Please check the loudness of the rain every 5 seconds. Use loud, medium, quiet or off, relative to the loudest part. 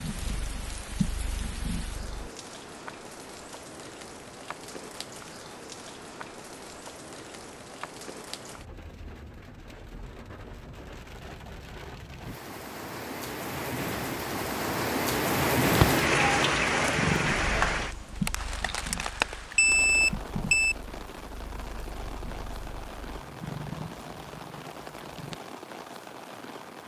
quiet, quiet, medium, loud, quiet, quiet.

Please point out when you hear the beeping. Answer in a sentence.
You can hear the beeping from 19.5 to 20.8 s.